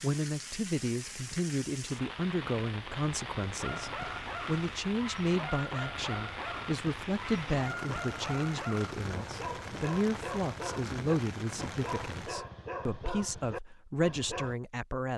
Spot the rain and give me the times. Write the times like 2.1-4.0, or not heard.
0.0-12.4.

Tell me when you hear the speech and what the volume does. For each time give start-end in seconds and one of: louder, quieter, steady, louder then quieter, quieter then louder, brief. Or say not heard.
0.0-15.1 steady.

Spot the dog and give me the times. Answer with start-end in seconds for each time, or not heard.
3.5-14.6.